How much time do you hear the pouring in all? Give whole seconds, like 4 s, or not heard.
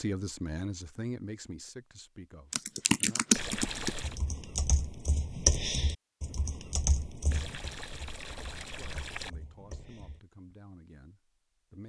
3 s.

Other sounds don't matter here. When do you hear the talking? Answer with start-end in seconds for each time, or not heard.
0.0-3.2, 8.6-11.8.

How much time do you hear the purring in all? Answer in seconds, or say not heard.
not heard.